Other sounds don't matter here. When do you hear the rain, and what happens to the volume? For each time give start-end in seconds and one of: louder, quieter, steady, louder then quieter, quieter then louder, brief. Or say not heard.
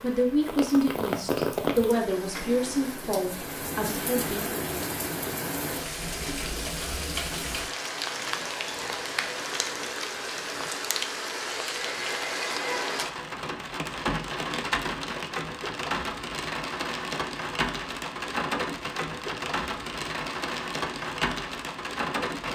0.0-22.4 steady.